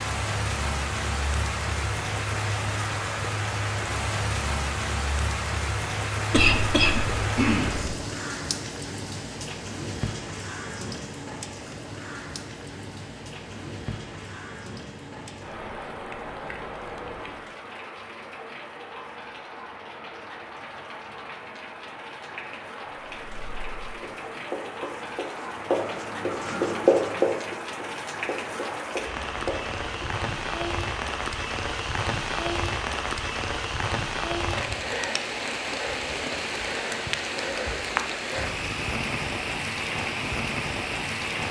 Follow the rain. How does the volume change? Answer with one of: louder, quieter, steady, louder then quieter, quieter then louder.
quieter then louder.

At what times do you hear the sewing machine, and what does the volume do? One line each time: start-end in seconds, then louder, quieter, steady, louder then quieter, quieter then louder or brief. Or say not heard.
not heard.